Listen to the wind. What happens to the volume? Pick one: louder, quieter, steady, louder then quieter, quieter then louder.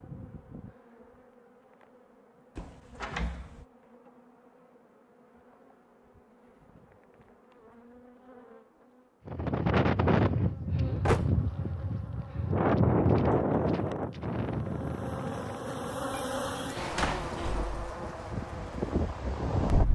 quieter then louder.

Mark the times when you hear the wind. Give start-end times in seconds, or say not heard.
9.2-19.9.